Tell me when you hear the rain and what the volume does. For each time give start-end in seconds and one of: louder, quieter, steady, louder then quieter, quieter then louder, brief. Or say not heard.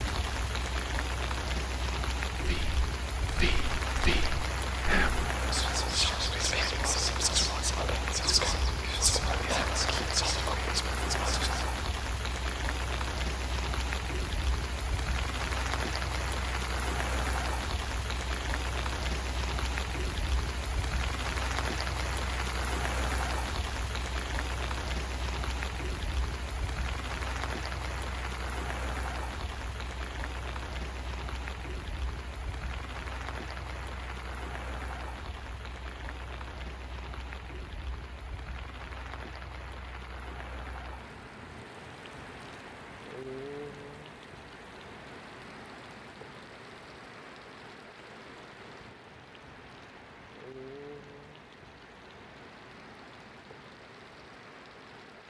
0.0-55.2 quieter.